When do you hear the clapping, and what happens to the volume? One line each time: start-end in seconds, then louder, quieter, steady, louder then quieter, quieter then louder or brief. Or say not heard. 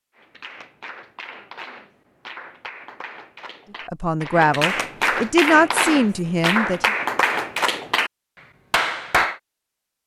0.1-8.1 louder
8.7-9.4 brief.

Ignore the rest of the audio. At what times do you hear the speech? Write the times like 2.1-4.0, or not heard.
3.9-6.9.